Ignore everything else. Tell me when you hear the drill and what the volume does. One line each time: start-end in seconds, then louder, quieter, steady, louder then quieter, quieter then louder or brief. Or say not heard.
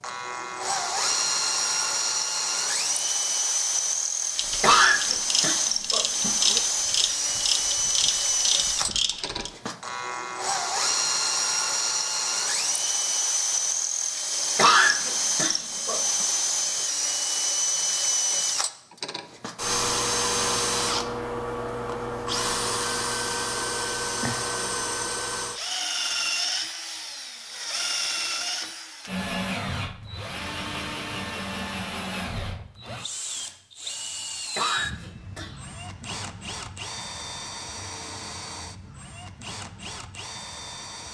0.0-41.0 quieter.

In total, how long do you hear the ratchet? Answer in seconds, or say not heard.
5 s.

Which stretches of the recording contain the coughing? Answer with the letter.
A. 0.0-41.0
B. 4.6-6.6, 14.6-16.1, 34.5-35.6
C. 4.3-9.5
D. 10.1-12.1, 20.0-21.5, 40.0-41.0
B.